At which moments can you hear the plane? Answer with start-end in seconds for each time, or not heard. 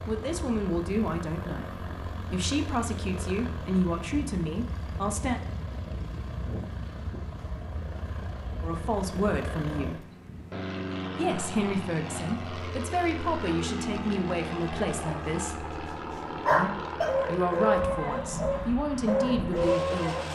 0.0-20.3.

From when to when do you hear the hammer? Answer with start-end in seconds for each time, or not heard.
not heard.